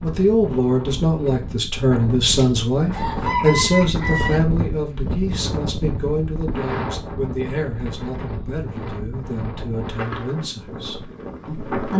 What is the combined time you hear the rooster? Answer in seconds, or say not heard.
2 s.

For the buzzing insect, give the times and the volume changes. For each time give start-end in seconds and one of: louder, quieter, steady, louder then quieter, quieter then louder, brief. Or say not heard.
not heard.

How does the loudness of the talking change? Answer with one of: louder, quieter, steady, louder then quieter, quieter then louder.
quieter.